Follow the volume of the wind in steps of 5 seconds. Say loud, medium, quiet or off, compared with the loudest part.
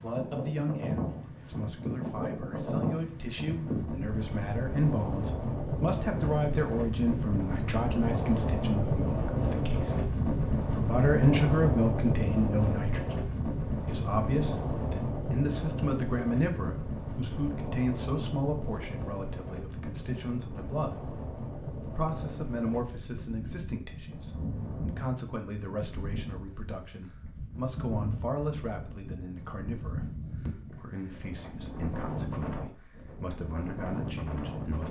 loud, loud, loud, medium, medium, medium, medium.